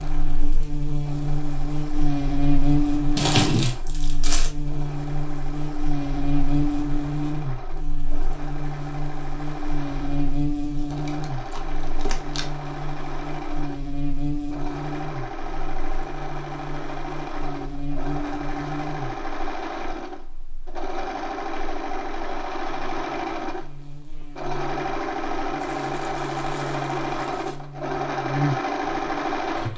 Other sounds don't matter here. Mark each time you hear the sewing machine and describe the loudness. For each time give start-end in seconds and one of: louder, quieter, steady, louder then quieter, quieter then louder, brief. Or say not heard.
0.0-29.7 louder.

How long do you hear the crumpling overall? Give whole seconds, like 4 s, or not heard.
5 s.